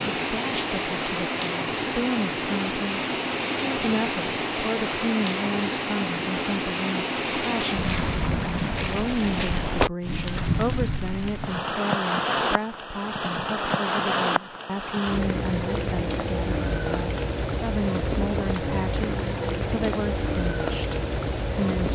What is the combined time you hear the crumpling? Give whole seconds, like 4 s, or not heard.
2 s.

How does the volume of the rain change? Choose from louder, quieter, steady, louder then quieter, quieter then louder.
steady.